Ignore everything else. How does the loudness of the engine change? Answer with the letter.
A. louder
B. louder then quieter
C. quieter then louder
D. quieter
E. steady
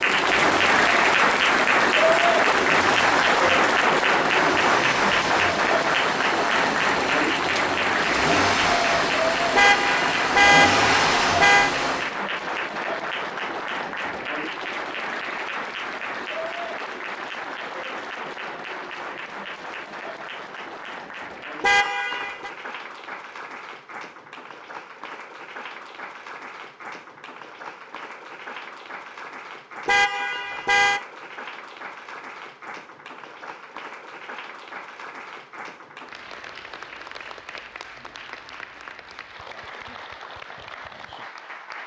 A.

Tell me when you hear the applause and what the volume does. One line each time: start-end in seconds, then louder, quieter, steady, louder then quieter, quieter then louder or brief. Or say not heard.
0.0-41.8 quieter.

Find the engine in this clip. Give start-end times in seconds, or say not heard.
0.0-12.2.